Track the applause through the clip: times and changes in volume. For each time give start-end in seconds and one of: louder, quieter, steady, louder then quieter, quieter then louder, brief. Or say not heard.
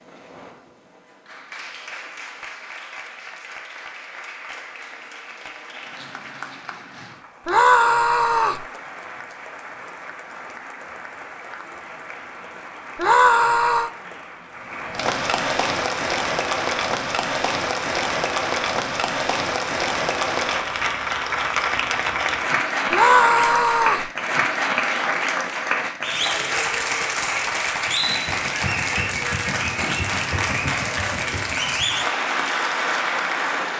0.0-33.7 louder.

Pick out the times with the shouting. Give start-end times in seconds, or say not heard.
7.5-8.7, 12.9-13.9, 22.9-24.1.